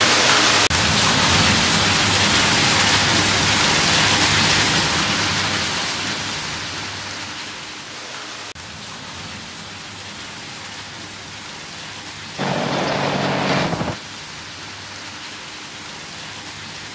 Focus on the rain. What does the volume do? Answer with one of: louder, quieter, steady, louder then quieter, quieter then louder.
quieter.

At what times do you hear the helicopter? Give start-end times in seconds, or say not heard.
12.3-13.9.